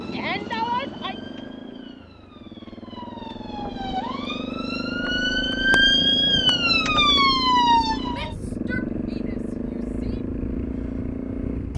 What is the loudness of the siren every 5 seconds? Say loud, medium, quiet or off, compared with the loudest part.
quiet, loud, off.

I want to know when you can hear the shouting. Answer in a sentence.
The shouting can be heard from 0.1 to 1.1 s and from 8.1 to 10.2 s.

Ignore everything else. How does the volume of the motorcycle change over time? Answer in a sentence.
The loudness of the motorcycle goes up.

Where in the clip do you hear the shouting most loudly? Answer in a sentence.
The volume of the shouting peaks at 1 second.